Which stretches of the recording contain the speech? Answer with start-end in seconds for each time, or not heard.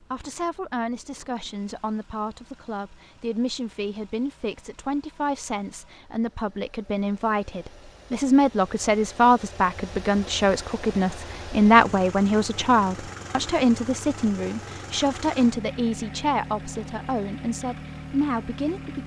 0.0-19.0.